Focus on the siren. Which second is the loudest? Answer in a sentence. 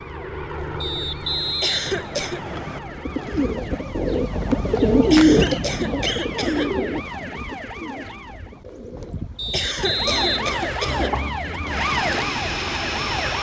The volume of the siren peaks at 12 seconds.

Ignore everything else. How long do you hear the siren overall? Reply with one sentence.
You can hear the siren for 12 seconds altogether.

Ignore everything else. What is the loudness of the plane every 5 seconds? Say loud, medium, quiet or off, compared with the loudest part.
medium, off, loud.